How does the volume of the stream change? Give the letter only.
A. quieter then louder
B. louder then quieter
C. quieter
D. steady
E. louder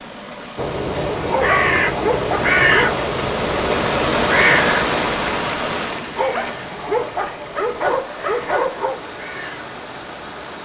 B.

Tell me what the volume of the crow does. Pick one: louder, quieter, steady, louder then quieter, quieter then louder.
quieter.